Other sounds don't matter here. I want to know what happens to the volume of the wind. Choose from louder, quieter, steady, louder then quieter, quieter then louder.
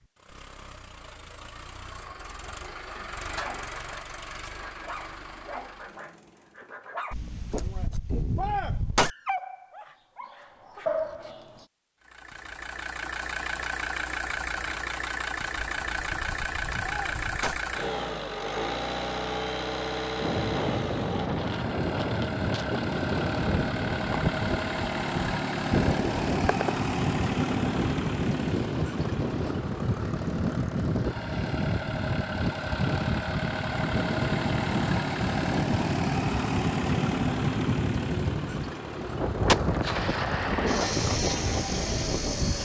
steady.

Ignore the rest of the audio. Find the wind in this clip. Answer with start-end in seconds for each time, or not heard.
20.1-42.6.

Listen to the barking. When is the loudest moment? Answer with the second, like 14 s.
11 s.